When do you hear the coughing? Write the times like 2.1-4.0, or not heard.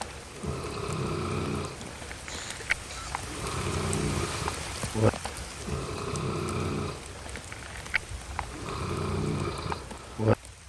1.8-3.2.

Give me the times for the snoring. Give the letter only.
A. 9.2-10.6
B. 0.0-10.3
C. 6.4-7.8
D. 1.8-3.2
B.